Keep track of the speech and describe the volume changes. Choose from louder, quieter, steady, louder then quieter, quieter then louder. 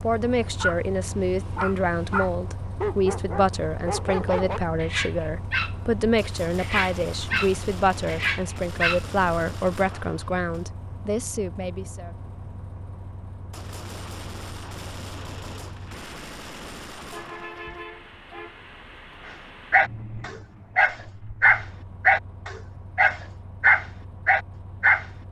steady.